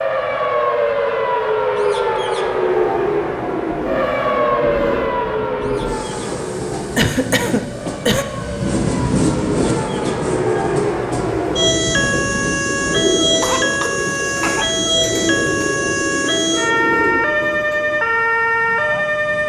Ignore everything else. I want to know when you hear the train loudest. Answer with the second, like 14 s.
9 s.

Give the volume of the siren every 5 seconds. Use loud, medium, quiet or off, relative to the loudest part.
loud, medium, loud, loud.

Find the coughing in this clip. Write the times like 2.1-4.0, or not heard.
7.0-8.2, 13.2-14.7.